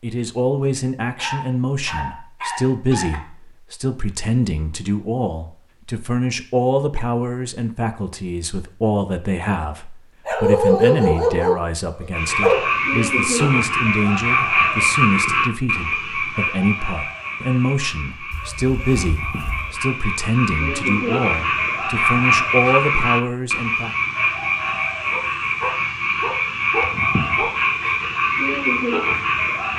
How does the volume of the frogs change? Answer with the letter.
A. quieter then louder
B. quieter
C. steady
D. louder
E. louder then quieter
A.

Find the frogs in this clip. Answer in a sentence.
The frogs can be heard from 12.1 to 29.7 s.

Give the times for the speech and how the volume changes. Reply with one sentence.
The speech can be heard from 0.0 to 23.9 s, at a steady volume.